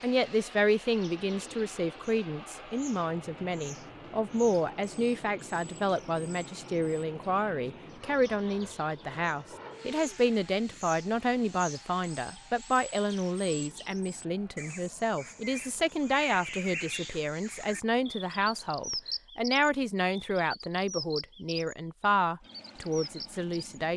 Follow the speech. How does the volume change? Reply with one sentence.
The volume of the speech stays about the same.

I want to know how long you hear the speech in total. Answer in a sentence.
The speech can be heard for 24 seconds in total.